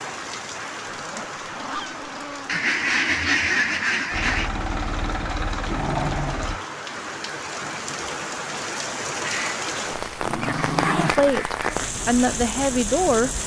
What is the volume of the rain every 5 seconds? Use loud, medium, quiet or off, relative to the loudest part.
medium, loud, loud.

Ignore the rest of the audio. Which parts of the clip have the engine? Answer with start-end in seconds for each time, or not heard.
4.1-6.6.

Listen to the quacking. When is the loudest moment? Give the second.
3 s.